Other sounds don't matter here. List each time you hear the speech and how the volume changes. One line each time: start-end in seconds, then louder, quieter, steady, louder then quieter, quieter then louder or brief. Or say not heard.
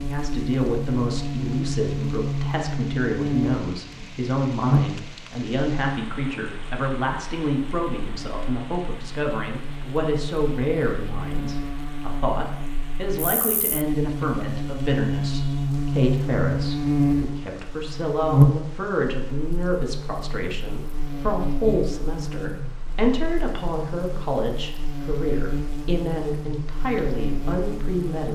0.0-28.2 steady.